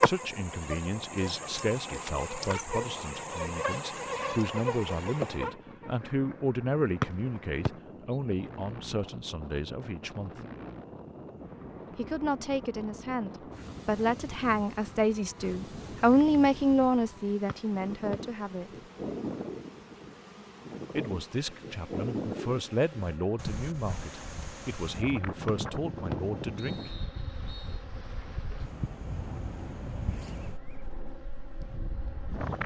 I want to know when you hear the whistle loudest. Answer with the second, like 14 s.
7 s.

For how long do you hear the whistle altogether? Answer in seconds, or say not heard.
4 s.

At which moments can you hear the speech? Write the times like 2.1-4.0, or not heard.
0.0-10.4, 11.9-18.9, 20.9-26.9.